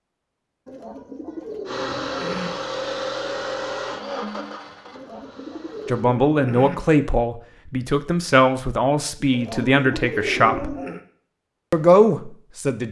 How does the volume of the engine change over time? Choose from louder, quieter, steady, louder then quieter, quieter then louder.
quieter.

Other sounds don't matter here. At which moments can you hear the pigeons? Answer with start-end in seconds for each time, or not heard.
0.7-2.5, 4.9-6.8, 9.3-11.0.